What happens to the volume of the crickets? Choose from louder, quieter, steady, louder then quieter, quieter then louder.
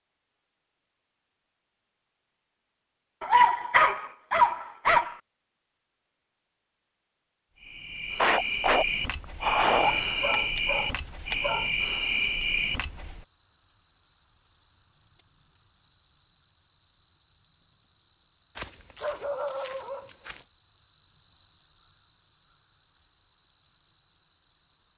steady.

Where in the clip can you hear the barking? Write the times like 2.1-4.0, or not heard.
3.2-5.2, 9.8-11.7, 18.6-20.4.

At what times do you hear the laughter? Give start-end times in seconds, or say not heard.
8.2-9.9.